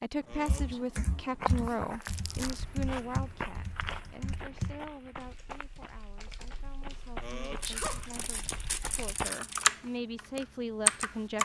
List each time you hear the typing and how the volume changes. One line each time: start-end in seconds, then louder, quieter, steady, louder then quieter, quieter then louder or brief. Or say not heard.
0.5-11.4 quieter then louder.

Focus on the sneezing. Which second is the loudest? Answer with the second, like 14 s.
8 s.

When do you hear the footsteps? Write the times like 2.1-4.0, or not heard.
1.4-9.3.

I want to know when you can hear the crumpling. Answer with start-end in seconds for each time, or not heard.
2.0-2.6, 7.6-9.7.